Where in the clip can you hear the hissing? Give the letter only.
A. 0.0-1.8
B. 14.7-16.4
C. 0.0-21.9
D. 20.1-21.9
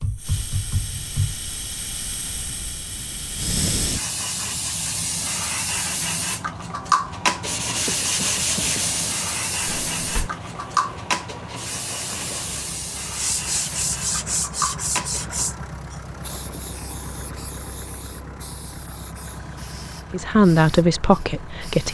C.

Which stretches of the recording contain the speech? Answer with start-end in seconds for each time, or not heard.
20.1-21.9.